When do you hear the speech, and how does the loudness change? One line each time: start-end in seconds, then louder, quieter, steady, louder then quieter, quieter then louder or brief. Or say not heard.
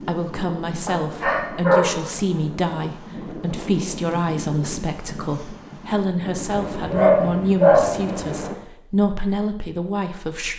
0.1-10.5 steady.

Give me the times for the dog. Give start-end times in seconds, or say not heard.
0.8-1.9, 6.5-8.4.